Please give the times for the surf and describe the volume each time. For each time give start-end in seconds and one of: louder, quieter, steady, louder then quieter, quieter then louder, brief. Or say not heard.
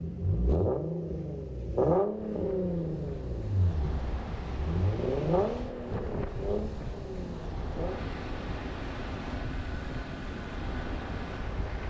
0.0-11.8 louder.